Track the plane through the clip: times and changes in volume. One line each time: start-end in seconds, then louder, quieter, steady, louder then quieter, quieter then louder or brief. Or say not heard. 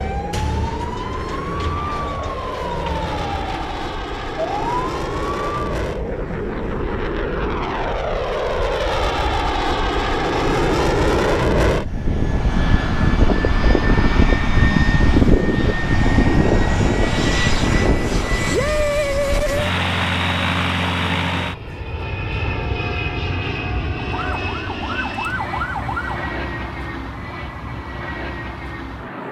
0.0-29.2 louder then quieter.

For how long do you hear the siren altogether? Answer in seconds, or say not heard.
8 s.